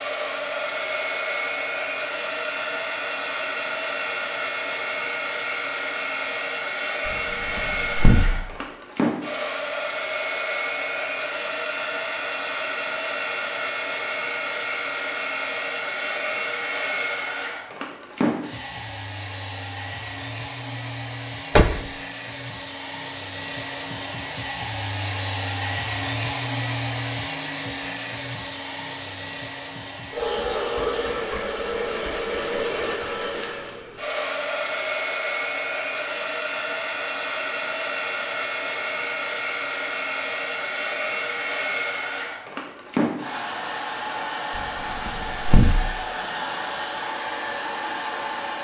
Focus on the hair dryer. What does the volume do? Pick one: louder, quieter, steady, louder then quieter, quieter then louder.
steady.